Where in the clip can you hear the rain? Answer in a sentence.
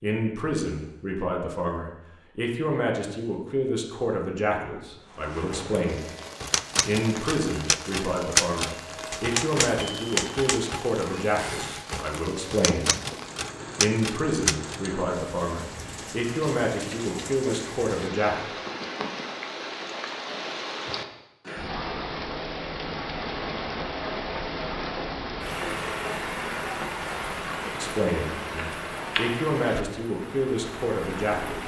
You can hear the rain from 5.0 to 31.6 s.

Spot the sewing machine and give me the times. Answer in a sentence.
The sewing machine can't be heard in this clip.